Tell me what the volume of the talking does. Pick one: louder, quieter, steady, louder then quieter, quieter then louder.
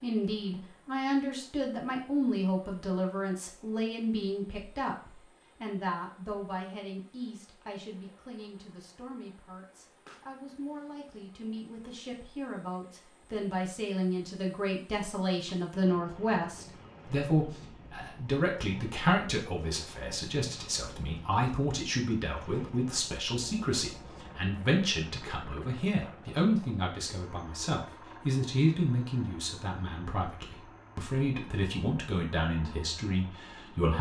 quieter then louder.